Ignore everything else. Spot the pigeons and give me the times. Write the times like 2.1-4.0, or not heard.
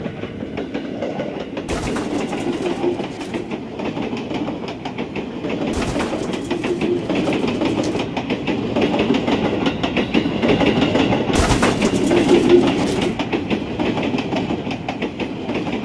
1.6-3.6, 5.7-8.1, 11.3-13.2.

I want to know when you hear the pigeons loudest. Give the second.
12 s.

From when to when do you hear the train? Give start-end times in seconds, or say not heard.
0.0-15.7.